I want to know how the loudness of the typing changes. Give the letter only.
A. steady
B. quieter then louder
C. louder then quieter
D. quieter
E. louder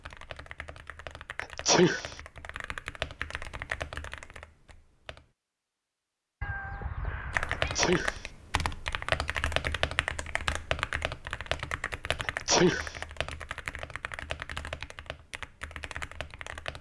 C.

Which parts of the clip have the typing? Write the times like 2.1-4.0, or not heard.
0.0-5.3, 7.3-16.7.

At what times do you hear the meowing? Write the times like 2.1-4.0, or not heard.
6.4-7.8.